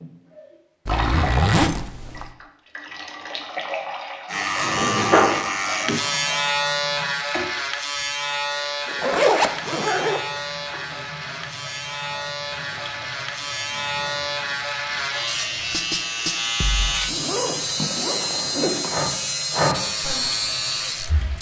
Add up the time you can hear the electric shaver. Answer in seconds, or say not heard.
17 s.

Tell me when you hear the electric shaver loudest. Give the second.
5 s.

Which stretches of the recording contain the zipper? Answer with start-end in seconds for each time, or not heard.
0.8-2.3, 8.8-10.2, 17.1-18.9.